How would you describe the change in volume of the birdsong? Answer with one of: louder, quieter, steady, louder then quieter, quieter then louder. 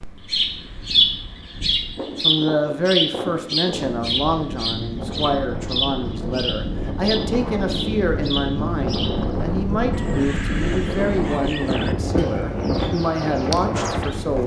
quieter.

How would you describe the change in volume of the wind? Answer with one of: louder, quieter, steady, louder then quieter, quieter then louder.
louder.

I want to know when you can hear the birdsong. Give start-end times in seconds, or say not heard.
0.0-14.4.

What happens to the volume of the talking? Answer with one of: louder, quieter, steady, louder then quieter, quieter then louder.
steady.